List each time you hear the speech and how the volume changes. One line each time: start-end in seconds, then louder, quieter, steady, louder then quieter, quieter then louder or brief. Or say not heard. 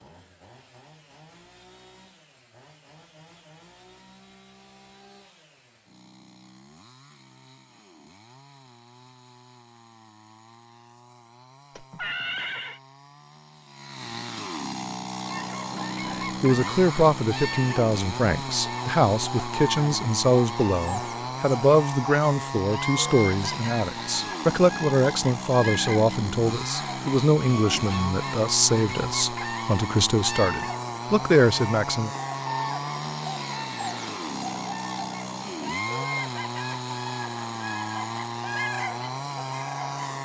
16.1-32.1 steady.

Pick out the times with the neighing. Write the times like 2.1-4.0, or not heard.
11.8-12.8.